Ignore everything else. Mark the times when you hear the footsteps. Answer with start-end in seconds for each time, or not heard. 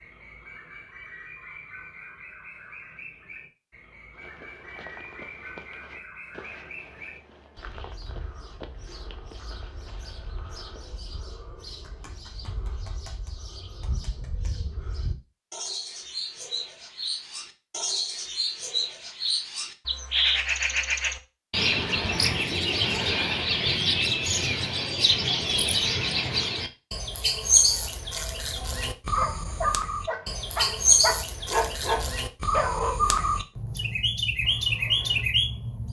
4.2-11.0.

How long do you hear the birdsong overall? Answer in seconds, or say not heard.
36 s.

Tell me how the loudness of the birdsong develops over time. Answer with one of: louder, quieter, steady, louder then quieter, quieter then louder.
louder.